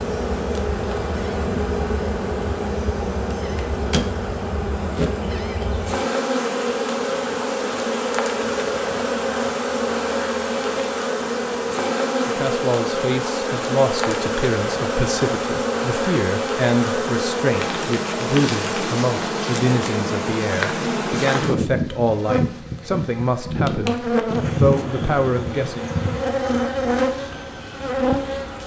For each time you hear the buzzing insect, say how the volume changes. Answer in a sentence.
The buzzing insect can be heard from 0.0 to 28.6 s, at a steady volume.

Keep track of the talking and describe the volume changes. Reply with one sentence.
The loudness of the talking stays about the same.